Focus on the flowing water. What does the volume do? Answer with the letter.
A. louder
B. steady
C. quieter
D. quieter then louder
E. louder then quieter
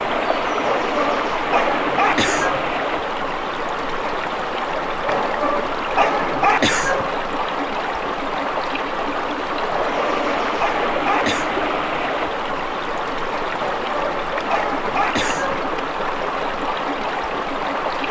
B.